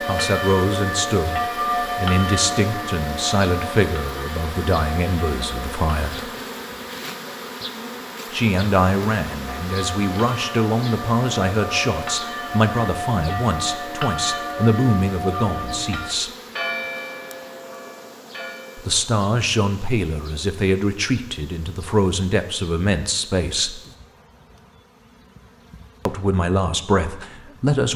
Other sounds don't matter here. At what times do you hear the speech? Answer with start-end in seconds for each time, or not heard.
0.0-6.3, 8.3-16.3, 18.8-23.8, 26.1-27.9.